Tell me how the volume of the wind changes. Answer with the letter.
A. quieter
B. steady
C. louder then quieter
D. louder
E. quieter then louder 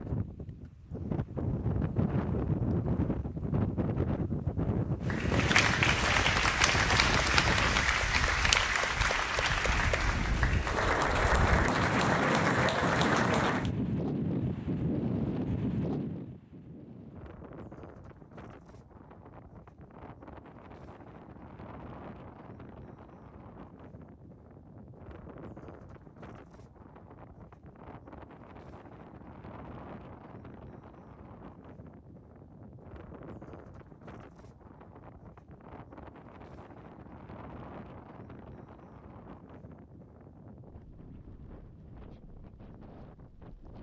A.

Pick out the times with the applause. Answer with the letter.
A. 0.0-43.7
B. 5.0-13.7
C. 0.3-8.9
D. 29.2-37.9
B.